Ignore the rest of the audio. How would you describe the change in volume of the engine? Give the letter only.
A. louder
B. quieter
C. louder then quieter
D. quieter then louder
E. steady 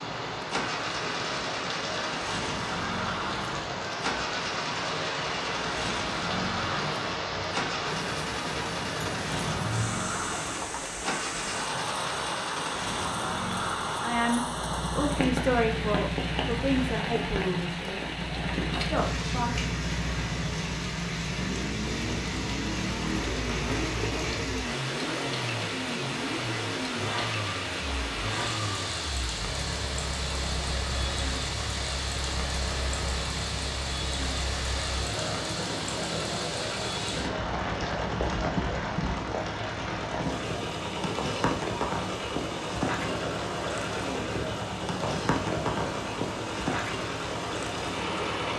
E.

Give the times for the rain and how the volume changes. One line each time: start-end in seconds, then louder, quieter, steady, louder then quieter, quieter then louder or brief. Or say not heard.
0.0-48.5 steady.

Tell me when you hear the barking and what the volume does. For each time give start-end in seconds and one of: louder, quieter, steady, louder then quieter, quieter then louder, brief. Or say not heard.
not heard.